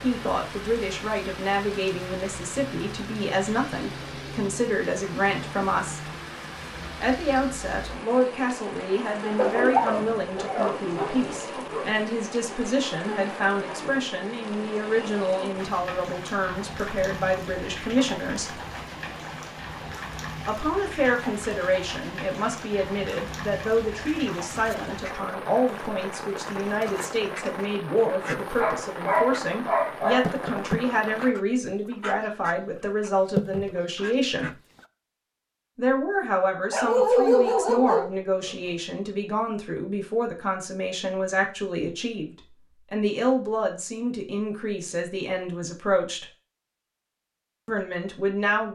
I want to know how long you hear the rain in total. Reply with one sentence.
You can hear the rain for 31 seconds altogether.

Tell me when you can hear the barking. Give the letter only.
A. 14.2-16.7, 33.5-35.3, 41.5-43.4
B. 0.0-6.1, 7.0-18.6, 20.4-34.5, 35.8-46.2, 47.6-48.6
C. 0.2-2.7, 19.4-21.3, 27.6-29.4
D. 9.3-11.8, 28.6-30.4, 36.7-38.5
D.